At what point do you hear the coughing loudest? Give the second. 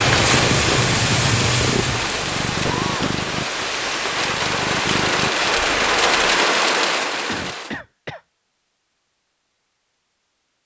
3 s.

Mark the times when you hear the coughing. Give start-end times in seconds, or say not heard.
2.6-3.4, 7.2-8.2.